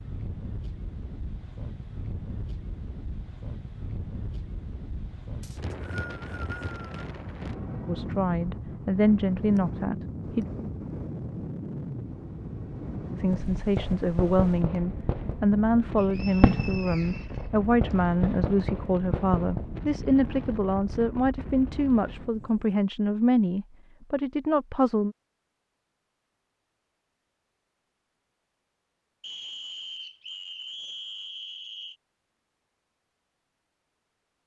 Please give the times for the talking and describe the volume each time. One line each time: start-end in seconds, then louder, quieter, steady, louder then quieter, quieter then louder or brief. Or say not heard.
7.8-10.4 brief
13.2-25.1 steady.